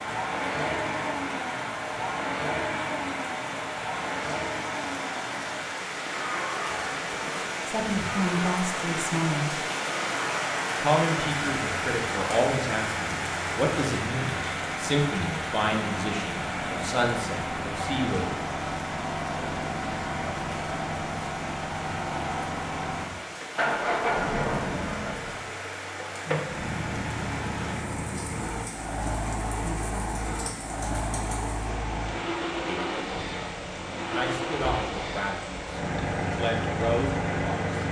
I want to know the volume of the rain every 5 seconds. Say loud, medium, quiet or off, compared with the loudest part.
medium, loud, loud, medium, medium, medium, medium, medium.